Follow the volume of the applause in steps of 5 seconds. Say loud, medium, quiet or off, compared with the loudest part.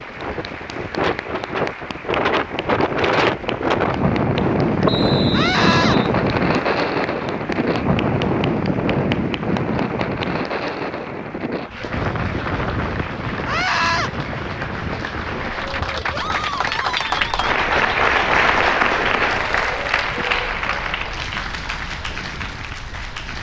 quiet, quiet, quiet, loud, medium.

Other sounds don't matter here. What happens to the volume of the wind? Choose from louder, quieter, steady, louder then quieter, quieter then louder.
quieter.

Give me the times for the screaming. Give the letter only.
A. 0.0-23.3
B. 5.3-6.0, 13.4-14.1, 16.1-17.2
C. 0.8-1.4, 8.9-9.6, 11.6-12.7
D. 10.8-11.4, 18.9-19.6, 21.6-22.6
B.